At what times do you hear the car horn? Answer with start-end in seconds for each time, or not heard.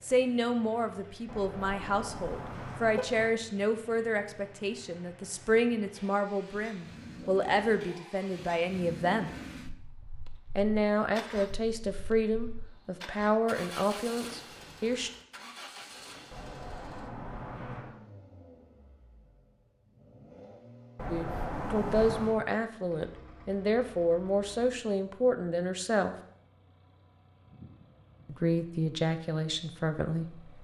1.2-3.3, 16.3-18.0, 20.9-22.4.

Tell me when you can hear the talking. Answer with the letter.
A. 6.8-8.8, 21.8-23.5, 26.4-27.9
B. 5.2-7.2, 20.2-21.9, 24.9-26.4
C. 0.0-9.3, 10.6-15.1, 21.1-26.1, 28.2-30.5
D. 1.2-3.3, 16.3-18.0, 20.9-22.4
C.